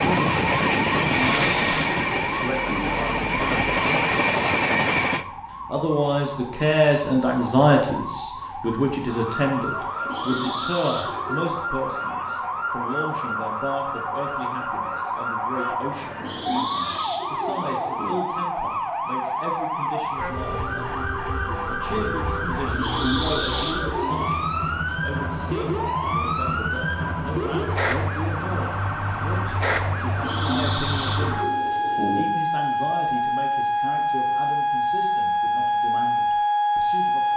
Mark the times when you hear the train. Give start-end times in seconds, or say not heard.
0.0-5.2.